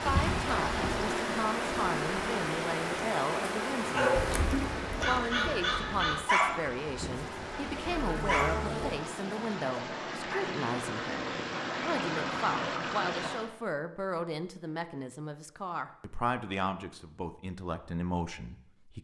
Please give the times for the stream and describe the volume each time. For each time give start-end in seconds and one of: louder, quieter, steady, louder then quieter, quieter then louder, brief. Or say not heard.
0.0-13.5 quieter then louder.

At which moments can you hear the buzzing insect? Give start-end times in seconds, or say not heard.
0.0-9.0.